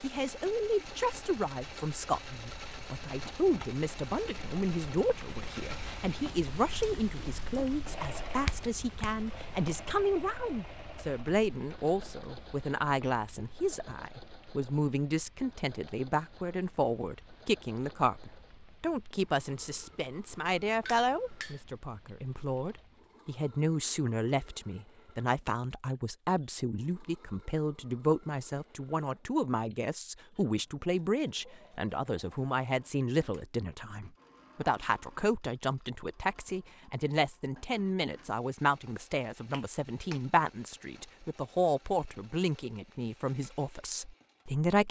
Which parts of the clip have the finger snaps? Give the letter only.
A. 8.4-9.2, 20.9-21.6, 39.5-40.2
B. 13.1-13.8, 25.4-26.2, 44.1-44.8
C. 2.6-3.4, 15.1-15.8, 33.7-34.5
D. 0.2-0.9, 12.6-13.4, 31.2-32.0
A.